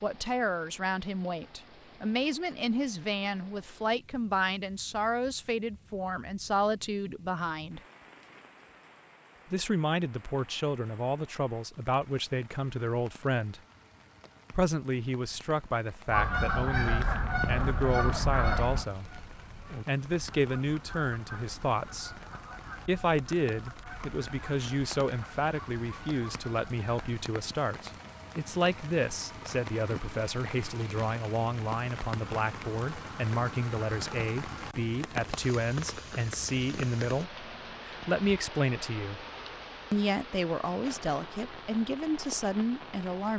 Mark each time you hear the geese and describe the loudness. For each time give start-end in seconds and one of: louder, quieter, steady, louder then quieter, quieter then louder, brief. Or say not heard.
16.1-27.2 quieter.